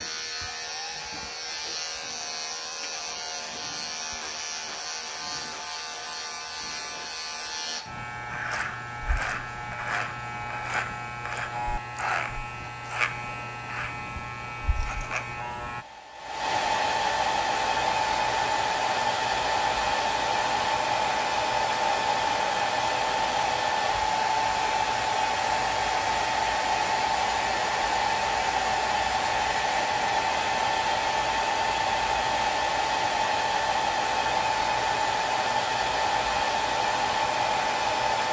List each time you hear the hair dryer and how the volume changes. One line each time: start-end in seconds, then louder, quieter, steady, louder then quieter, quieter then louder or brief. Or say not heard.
0.0-38.2 louder.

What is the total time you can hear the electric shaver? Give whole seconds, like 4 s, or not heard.
16 s.